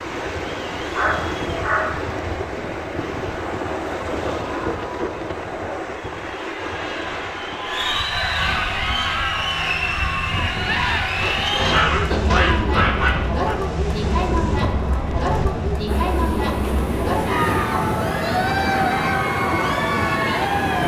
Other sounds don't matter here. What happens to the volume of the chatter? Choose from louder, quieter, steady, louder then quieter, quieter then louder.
louder.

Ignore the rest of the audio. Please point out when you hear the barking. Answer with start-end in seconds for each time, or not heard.
0.9-2.0, 11.2-13.6.